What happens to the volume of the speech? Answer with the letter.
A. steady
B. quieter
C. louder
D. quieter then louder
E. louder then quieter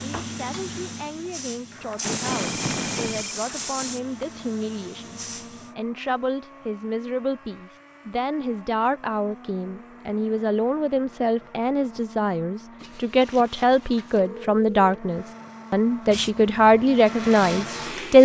C.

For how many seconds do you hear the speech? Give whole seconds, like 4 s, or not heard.
18 s.